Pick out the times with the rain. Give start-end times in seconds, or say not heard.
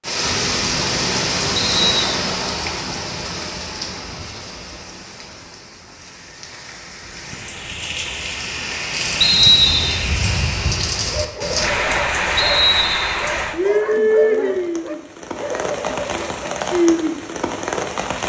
0.0-18.2.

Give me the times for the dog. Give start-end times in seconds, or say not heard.
11.1-16.6.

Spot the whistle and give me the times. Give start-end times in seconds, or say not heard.
1.6-2.0, 9.2-10.1, 12.3-13.2.